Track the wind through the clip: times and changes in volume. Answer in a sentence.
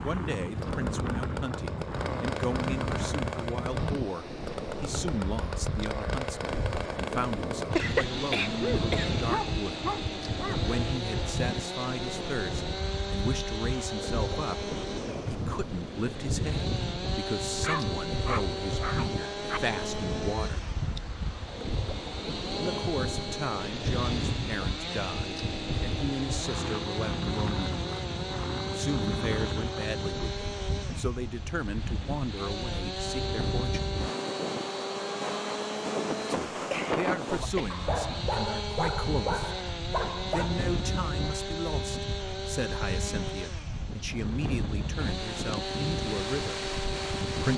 The wind can be heard from 0.0 to 47.5 s, at a steady volume.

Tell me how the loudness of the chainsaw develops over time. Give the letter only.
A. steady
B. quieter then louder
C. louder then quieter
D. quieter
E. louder
A.